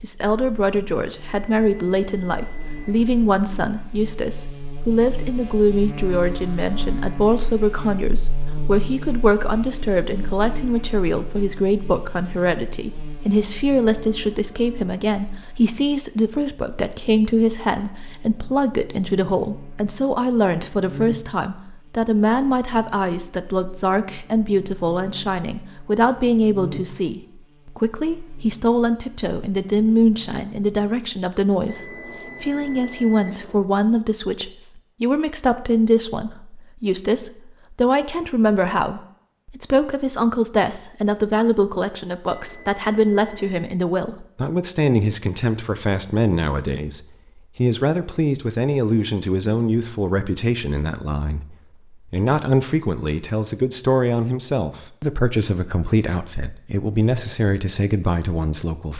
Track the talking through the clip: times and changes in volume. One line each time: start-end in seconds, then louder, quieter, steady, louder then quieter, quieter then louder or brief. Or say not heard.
0.0-58.9 steady.